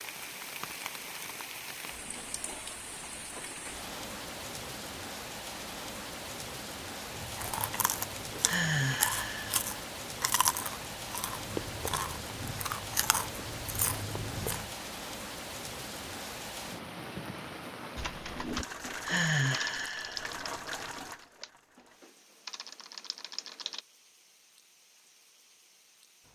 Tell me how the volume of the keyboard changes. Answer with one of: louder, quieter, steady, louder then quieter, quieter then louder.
quieter then louder.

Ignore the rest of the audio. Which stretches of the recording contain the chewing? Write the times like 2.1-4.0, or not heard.
7.1-14.8.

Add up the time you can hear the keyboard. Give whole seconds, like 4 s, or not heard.
6 s.